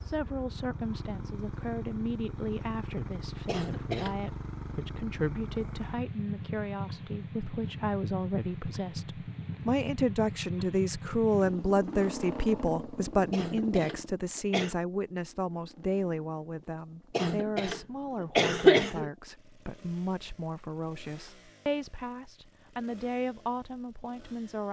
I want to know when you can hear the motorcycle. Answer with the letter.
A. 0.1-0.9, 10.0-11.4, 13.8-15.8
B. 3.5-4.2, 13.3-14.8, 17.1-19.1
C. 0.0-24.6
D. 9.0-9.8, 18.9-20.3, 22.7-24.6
C.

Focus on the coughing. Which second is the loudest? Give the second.
19 s.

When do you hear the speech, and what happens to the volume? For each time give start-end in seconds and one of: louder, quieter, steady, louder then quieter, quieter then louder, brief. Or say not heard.
0.0-24.6 louder then quieter.